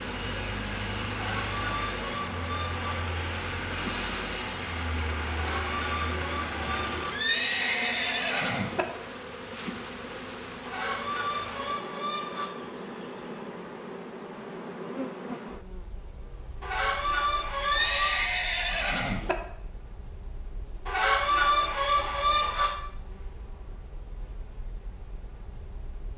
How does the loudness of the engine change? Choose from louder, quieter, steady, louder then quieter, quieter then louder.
steady.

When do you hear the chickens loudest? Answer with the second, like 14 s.
21 s.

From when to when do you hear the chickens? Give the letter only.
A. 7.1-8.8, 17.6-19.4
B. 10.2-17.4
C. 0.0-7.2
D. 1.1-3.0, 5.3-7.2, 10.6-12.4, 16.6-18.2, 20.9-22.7
D.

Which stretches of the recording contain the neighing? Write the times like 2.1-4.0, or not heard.
7.1-8.8, 17.6-19.4.